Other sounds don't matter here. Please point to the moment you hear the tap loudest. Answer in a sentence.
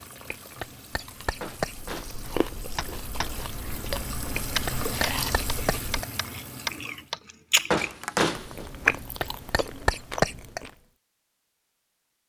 The loudest moment of the tap is at 5 seconds.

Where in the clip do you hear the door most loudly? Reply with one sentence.
The loudest moment of the door is at 8 seconds.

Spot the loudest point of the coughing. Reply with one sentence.
The loudest moment of the coughing is at 10 seconds.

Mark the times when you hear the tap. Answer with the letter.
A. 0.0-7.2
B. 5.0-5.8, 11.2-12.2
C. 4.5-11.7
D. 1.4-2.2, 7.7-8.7
A.